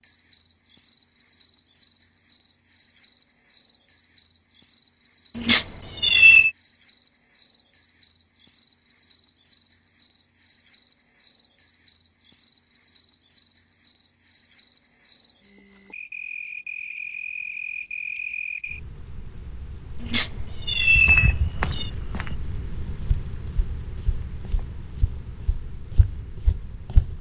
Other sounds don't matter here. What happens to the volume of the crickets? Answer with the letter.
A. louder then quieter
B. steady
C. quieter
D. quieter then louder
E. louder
E.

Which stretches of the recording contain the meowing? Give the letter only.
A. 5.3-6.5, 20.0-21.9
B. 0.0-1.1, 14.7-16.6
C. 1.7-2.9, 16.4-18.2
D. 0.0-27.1
A.